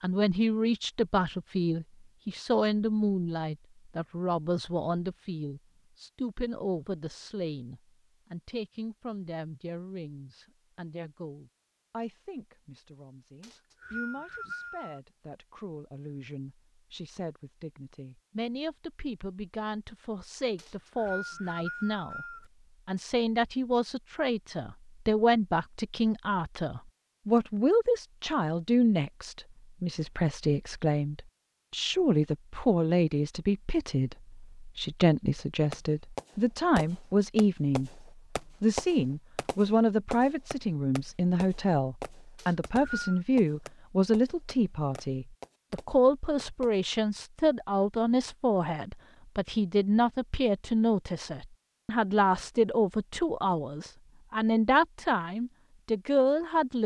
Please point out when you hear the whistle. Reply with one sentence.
You can hear the whistle from 13.4 to 15.0 s, from 20.6 to 22.4 s and from 42.4 to 43.2 s.